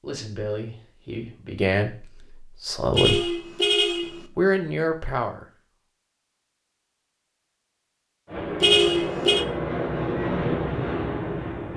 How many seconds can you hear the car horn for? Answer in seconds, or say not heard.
2 s.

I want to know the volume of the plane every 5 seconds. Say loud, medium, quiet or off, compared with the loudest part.
off, loud, loud.